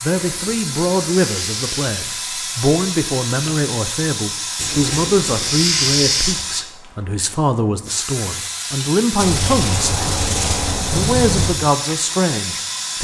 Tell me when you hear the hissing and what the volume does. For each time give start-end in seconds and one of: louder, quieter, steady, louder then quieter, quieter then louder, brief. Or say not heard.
0.0-12.9 steady.